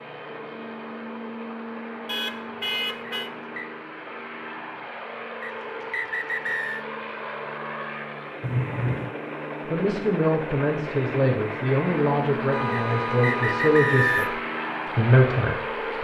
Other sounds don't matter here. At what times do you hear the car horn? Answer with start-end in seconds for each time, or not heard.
2.0-3.3, 8.4-9.2, 12.5-14.4.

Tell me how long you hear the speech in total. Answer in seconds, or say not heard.
6 s.